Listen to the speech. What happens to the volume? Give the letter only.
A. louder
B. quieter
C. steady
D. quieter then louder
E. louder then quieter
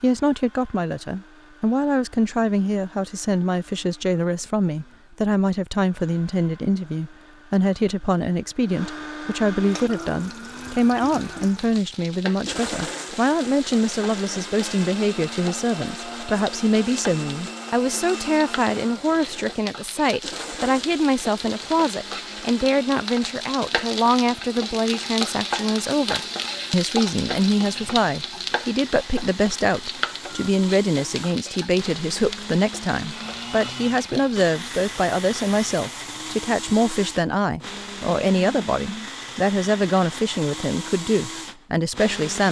C.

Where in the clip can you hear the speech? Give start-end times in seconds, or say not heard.
0.0-42.4.